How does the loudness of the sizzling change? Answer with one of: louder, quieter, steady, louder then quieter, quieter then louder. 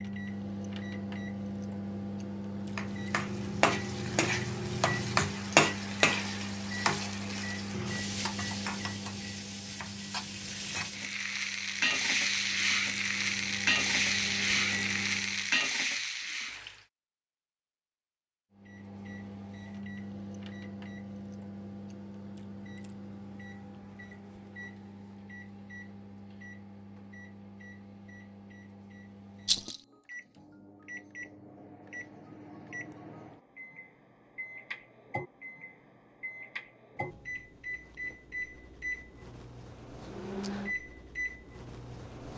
quieter then louder.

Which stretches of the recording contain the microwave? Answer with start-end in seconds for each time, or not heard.
0.0-15.6, 18.6-42.3.